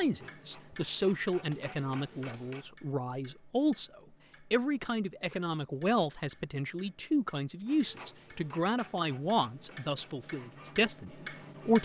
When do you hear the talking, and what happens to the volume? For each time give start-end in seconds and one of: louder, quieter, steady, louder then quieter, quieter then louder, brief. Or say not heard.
0.0-11.7 steady.